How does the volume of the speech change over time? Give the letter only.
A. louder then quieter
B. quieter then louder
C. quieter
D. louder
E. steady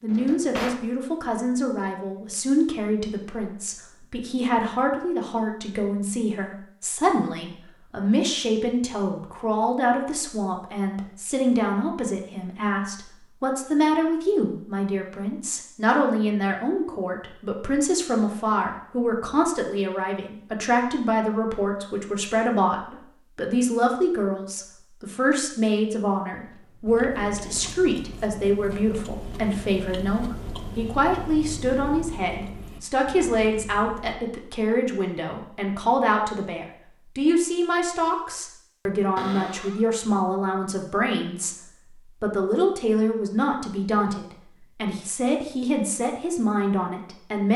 E.